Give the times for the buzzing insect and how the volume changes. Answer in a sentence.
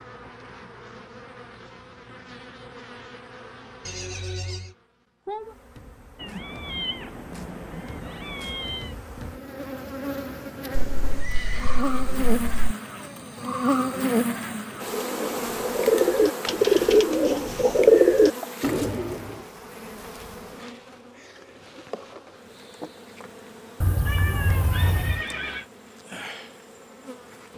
The buzzing insect can be heard from 0.0 to 27.5 s, getting louder then quieter.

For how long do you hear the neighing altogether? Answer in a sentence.
You can hear the neighing for 4 seconds altogether.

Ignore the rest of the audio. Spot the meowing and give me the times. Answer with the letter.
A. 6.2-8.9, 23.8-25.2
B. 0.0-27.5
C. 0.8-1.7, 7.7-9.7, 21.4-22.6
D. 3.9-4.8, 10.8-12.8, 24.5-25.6
A.